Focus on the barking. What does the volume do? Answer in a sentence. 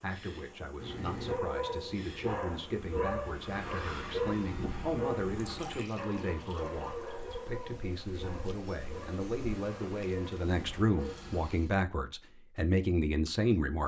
The loudness of the barking goes down.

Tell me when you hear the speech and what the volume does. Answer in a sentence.
The speech can be heard from 0.0 to 13.8 s, getting louder.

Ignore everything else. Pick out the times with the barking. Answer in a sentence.
The barking can be heard from 1.2 to 11.6 s.